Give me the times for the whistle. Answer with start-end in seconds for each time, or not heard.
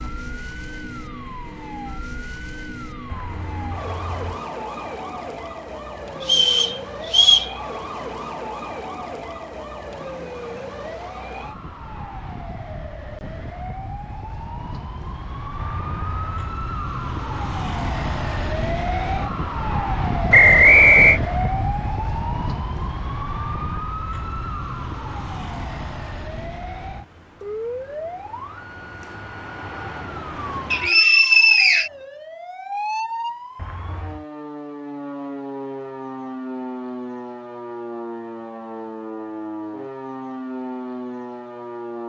6.2-7.5, 20.3-21.2, 30.7-31.9.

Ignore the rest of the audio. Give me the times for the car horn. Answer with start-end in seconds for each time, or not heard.
3.0-4.4, 15.6-16.6, 33.5-34.2.